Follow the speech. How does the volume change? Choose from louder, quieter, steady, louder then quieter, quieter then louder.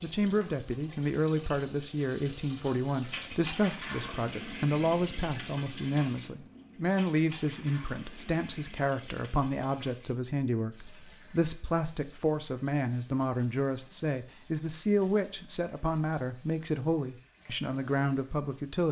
steady.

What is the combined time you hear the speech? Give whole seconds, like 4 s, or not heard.
19 s.